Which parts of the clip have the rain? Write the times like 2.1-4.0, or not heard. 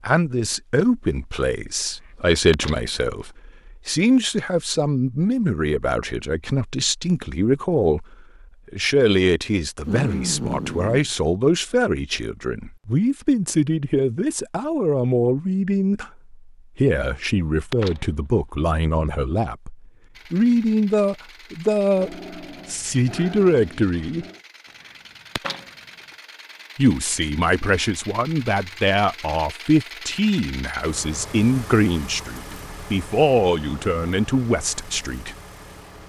not heard.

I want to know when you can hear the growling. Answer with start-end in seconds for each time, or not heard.
9.8-11.1, 21.9-24.4.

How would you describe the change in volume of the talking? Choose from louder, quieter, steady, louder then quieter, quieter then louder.
steady.